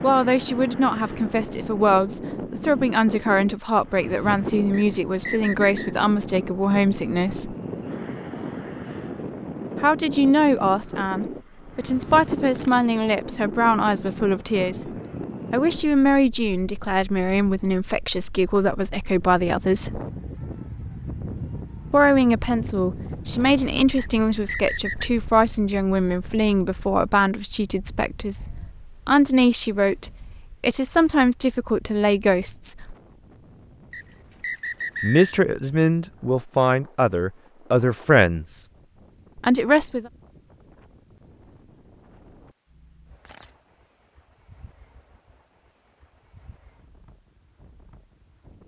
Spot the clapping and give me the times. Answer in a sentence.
You can't hear the clapping here.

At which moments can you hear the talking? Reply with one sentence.
You can hear the talking from 0.0 to 7.5 s, from 9.8 to 14.9 s, from 15.5 to 20.0 s, from 21.9 to 33.0 s, from 35.0 to 38.6 s and from 39.4 to 40.1 s.